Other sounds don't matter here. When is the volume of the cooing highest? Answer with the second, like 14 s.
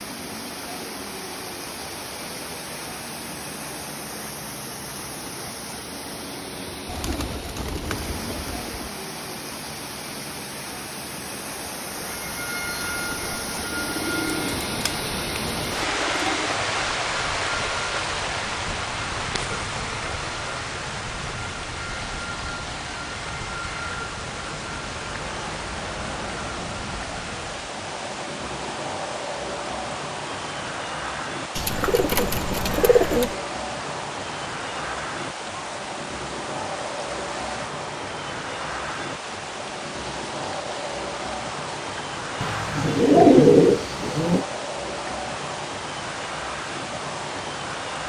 43 s.